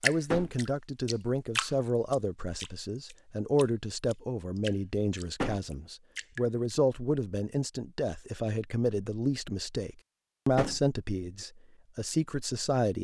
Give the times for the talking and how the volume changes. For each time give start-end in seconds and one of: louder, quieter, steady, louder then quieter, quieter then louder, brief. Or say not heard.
0.0-13.0 steady.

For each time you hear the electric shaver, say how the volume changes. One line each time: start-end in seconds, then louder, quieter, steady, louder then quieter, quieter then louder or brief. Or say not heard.
not heard.